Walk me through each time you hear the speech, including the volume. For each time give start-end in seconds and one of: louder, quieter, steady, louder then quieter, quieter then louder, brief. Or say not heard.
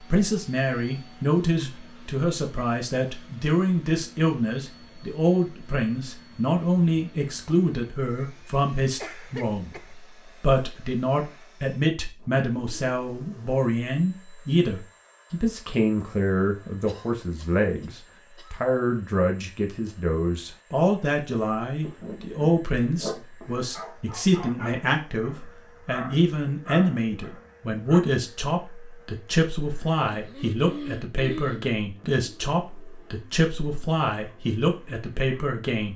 0.0-35.9 steady.